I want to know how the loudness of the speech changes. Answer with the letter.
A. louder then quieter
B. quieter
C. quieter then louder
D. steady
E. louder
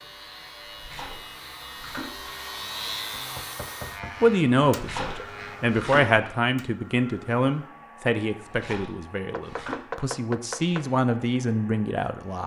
C.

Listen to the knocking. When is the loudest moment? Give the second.
10 s.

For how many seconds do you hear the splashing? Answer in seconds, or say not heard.
5 s.